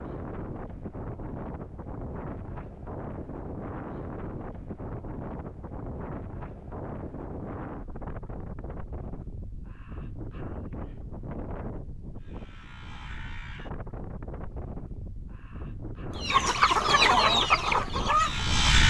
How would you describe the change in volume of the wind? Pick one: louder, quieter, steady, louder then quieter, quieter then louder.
steady.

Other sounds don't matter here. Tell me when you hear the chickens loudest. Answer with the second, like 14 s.
17 s.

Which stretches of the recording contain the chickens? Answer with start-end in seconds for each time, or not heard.
16.1-18.6.